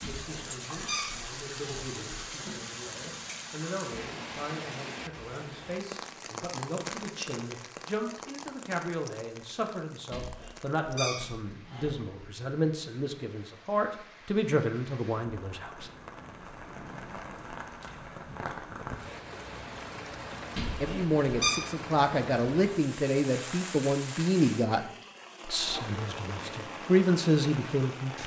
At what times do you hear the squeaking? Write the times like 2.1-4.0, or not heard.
0.0-2.5, 10.1-12.2, 20.6-21.6.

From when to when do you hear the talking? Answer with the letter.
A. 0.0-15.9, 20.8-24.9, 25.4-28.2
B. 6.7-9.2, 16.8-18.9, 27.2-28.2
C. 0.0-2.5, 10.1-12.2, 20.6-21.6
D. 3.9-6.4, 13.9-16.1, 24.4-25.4
A.